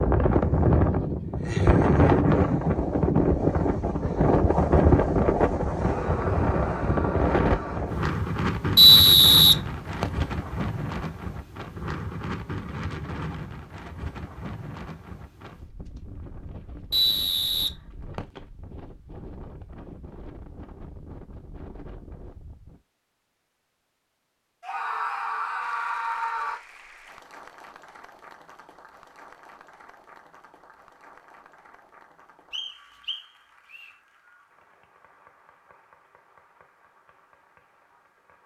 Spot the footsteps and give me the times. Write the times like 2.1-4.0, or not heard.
not heard.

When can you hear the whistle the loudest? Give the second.
9 s.